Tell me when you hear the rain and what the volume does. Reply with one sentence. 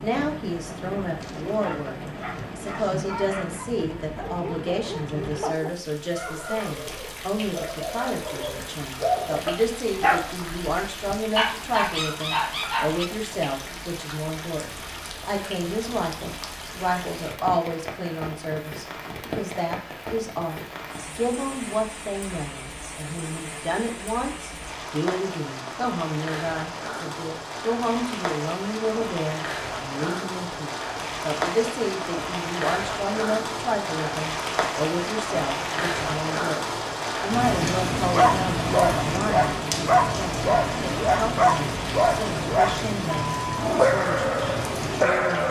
The rain can be heard from 0.0 to 45.4 s, getting louder.